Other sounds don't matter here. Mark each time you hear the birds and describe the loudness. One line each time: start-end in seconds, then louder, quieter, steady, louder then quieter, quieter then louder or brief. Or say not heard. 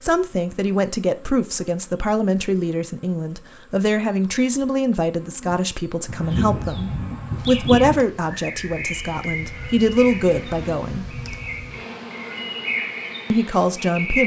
6.0-14.2 quieter then louder.